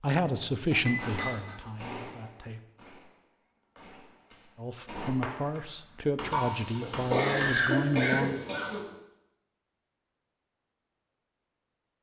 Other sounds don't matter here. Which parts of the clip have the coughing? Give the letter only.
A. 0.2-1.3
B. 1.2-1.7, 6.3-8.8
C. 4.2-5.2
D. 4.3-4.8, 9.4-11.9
B.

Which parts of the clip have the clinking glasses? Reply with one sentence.
You can hear the clinking glasses from 0.2 to 1.3 s.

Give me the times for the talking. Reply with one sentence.
The talking can be heard from 0.0 to 2.6 s and from 4.5 to 8.4 s.